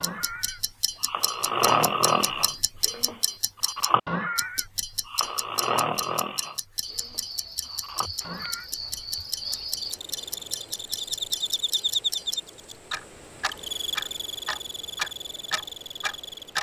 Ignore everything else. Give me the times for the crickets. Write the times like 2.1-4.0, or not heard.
6.8-16.5.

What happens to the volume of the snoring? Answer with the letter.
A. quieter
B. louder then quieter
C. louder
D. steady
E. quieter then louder
A.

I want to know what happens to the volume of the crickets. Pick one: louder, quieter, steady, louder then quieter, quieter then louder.
louder then quieter.